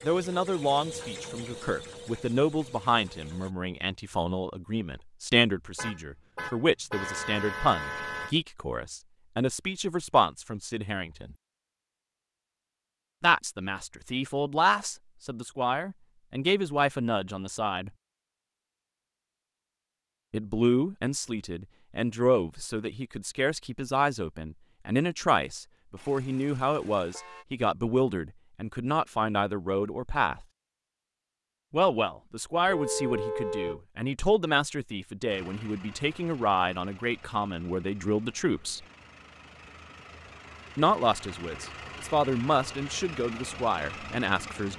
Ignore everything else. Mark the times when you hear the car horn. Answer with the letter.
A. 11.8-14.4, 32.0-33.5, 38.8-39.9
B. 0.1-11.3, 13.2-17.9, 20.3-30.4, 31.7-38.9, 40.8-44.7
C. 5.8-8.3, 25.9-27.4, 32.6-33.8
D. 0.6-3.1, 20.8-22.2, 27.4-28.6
C.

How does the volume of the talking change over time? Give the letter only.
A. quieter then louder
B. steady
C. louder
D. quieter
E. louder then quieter
B.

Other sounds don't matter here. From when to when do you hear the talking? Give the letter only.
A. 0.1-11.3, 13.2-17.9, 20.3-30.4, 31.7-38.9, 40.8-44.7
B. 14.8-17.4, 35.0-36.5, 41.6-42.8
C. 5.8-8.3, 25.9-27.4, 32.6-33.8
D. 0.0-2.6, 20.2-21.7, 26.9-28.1
A.